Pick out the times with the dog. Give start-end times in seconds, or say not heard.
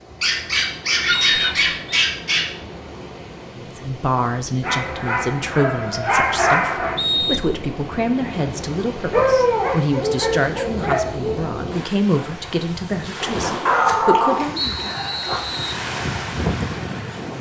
0.2-2.5, 4.6-7.0, 9.1-11.4, 13.7-15.4.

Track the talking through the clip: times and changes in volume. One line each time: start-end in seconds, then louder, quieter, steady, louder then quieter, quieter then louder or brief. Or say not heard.
3.5-14.8 steady.